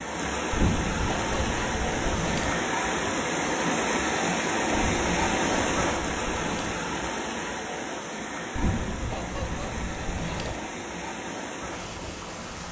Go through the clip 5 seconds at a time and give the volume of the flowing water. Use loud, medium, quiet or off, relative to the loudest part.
loud, loud, medium.